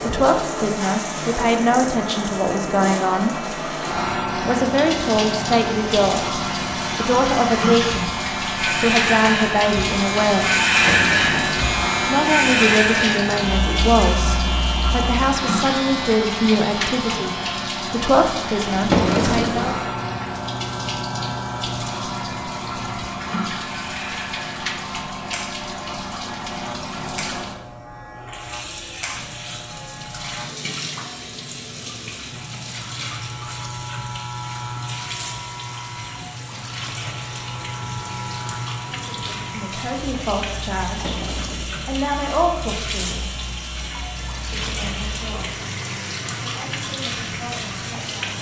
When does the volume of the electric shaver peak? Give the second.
11 s.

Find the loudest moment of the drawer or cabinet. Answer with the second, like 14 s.
19 s.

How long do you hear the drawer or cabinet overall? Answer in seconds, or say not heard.
3 s.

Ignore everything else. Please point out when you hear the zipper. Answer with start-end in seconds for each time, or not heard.
not heard.